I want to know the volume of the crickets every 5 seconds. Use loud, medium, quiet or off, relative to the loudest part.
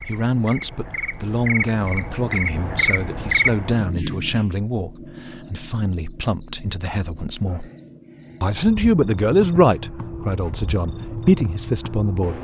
loud, medium, medium.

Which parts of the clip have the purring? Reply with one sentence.
The purring can't be heard in this clip.